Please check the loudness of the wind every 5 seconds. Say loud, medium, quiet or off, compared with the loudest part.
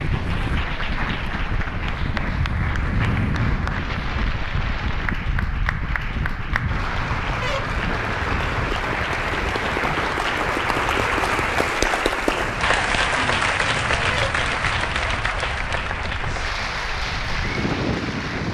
loud, loud, medium, loud.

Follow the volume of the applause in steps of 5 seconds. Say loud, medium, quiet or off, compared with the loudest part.
medium, medium, loud, medium.